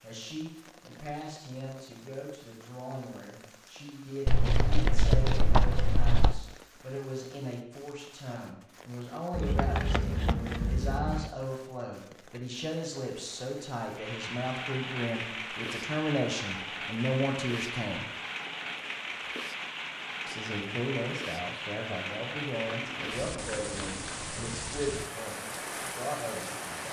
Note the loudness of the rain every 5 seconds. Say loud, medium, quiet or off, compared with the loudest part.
quiet, quiet, medium, loud, loud, loud.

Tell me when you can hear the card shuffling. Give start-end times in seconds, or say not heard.
4.2-6.4, 9.3-11.3, 22.6-24.3.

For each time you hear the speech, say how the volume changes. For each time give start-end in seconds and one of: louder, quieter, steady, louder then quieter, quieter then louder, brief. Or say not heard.
0.0-18.1 louder
20.2-26.8 steady.